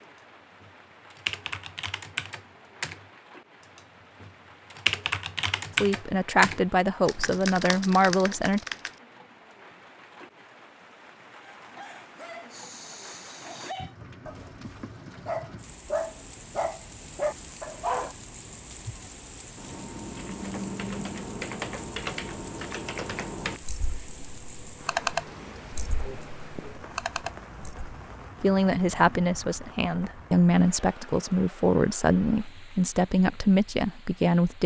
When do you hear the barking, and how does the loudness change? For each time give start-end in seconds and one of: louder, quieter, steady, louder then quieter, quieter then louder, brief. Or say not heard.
11.4-18.1 louder.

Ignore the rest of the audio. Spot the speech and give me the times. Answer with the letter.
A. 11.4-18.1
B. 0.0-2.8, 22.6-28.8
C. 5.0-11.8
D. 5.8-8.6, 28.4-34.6
D.